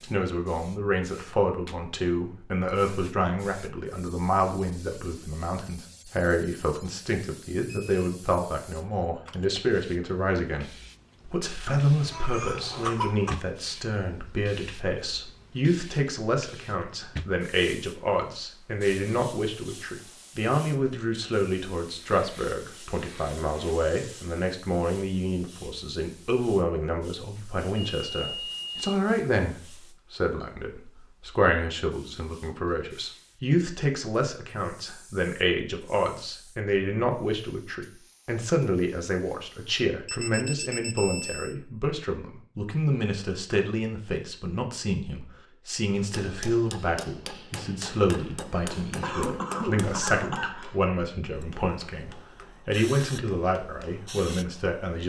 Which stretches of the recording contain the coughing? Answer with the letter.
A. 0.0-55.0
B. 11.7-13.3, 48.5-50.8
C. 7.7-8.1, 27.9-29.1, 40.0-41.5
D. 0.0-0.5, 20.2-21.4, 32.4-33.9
B.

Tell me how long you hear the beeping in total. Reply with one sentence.
You can hear the beeping for 3 seconds altogether.